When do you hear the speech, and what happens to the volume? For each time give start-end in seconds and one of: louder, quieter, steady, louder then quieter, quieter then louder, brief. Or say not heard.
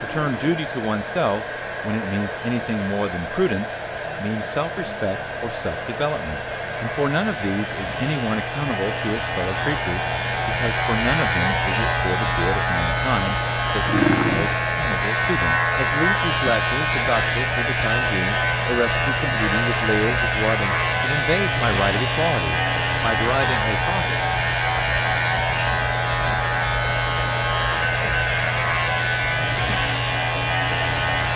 0.0-24.4 steady.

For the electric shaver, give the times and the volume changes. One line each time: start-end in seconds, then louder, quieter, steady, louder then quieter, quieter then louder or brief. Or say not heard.
0.0-31.3 louder.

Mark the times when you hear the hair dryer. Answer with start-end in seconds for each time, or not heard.
0.0-31.3.